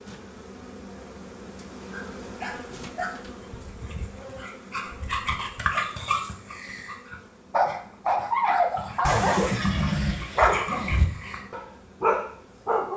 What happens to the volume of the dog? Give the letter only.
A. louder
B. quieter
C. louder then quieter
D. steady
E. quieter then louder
A.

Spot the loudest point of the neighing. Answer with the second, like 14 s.
10 s.